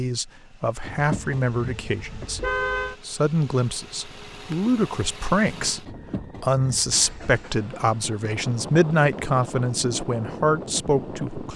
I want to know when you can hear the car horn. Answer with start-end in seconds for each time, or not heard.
0.8-3.0, 5.8-7.3.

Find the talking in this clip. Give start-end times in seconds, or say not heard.
0.0-11.5.